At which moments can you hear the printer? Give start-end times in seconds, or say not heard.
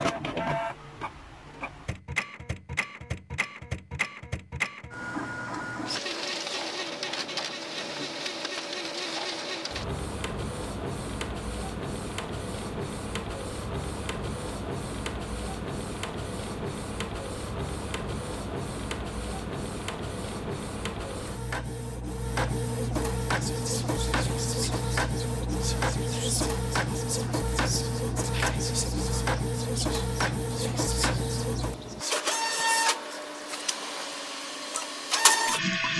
0.0-35.9.